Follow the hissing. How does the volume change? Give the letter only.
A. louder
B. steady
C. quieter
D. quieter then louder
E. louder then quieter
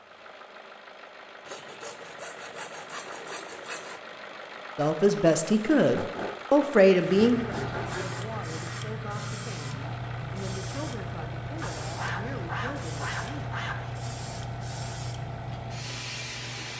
B.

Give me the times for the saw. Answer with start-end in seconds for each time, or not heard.
1.4-4.0, 6.0-8.2, 11.6-14.1.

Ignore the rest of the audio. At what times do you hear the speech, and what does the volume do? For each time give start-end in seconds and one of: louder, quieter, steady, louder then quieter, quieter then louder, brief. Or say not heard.
4.8-13.6 quieter.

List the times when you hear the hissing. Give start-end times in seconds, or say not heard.
7.0-16.7.